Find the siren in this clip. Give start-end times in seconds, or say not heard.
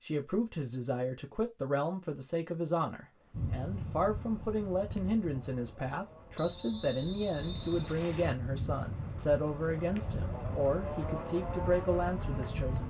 not heard.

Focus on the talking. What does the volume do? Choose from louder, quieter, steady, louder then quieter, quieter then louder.
steady.